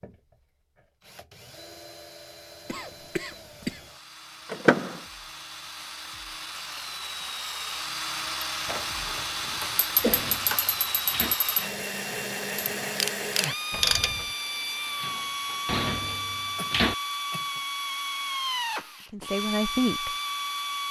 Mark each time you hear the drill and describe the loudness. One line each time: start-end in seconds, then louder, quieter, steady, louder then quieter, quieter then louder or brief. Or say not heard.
0.0-20.8 louder.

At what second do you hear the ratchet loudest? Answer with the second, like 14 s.
14 s.